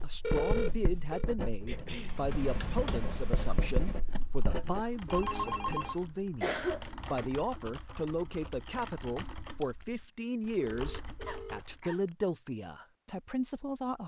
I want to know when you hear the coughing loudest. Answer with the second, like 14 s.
7 s.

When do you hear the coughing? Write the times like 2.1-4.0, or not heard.
1.6-2.2, 6.4-7.3, 11.2-12.0.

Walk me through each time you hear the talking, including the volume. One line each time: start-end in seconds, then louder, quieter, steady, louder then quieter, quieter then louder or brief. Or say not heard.
0.0-14.0 steady.